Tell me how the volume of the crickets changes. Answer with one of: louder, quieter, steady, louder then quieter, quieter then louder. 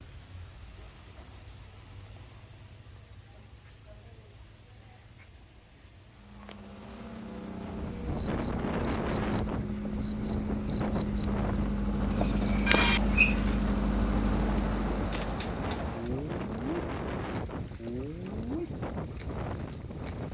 louder.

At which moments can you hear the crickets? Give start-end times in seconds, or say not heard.
0.0-20.2.